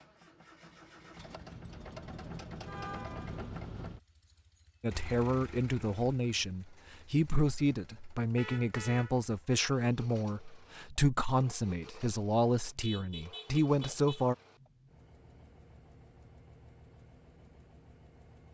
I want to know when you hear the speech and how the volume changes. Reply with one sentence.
The speech can be heard from 4.8 to 14.3 s, at a steady volume.